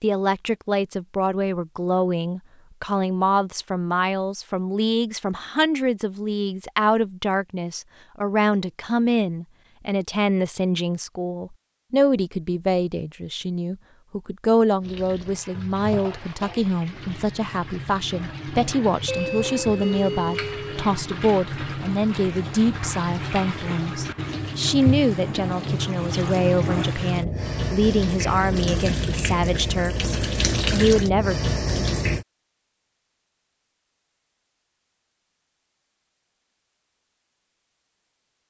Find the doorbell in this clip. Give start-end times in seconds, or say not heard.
19.1-20.8.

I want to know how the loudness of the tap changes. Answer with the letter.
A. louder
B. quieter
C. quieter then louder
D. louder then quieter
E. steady
A.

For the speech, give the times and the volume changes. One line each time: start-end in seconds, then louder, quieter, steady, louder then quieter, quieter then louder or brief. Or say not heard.
0.0-31.4 steady.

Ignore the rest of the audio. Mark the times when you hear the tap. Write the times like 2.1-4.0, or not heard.
14.8-32.2.